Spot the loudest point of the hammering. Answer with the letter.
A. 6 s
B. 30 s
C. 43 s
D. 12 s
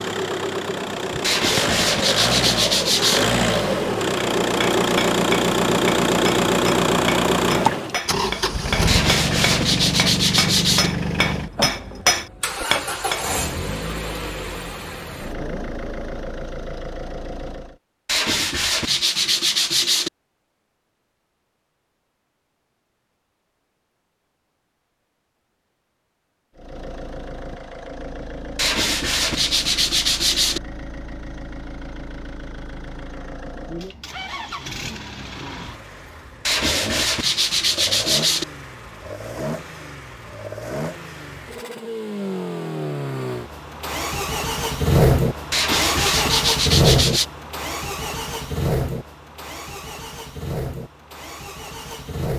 D.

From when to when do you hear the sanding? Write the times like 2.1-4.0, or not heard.
1.2-3.2, 8.8-10.9, 18.1-20.1, 28.6-30.6, 36.5-38.5, 45.5-47.2.